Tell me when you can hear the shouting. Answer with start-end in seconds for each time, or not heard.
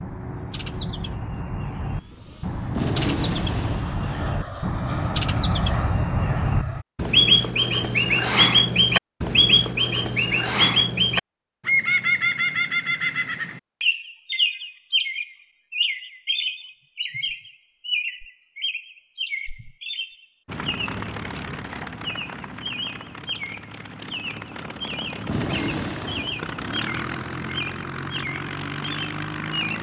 not heard.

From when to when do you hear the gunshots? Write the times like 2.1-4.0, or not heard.
2.8-4.3, 25.2-26.9.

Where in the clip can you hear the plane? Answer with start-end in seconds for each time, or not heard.
0.0-6.8, 20.4-29.7.